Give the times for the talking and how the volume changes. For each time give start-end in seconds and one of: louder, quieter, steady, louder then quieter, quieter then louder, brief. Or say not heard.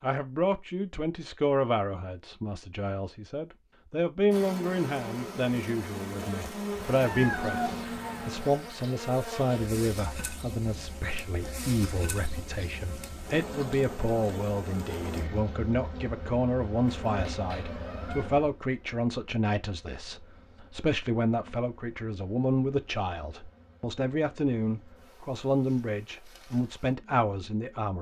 0.0-27.9 steady.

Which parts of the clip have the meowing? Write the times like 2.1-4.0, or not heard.
6.8-8.5, 17.1-18.3.